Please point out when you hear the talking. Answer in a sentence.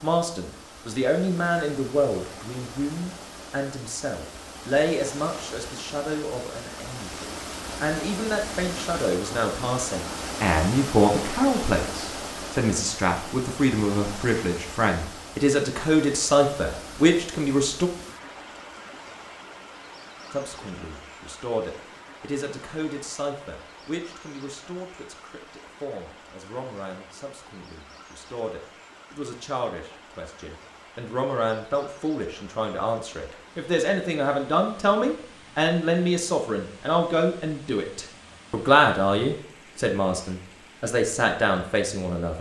You can hear the talking from 0.0 to 17.9 s and from 20.3 to 42.3 s.